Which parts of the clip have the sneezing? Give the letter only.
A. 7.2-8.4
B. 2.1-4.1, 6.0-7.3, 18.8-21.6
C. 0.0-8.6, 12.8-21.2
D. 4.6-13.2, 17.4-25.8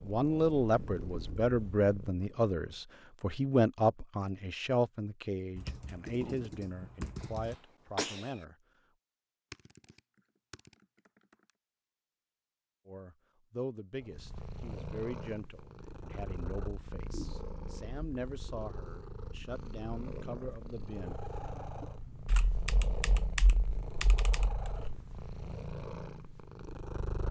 A.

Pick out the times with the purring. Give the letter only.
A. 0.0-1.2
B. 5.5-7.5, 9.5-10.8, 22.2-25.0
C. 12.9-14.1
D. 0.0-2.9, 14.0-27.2
D.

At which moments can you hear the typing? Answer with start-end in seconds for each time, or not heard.
5.5-7.5, 9.5-10.8, 22.2-25.0.